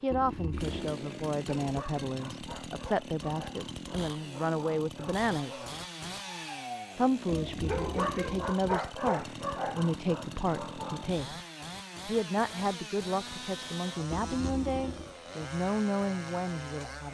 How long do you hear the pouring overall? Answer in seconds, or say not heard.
3 s.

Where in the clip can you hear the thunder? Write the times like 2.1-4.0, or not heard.
not heard.